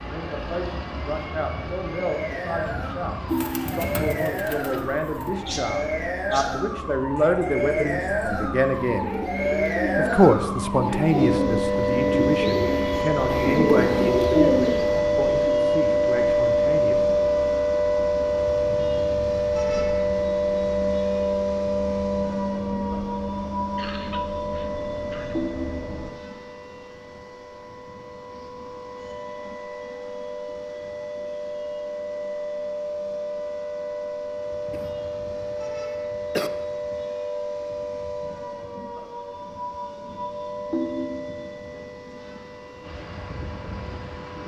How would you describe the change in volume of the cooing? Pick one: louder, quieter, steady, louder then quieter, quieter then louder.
louder.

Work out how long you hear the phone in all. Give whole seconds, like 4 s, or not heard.
2 s.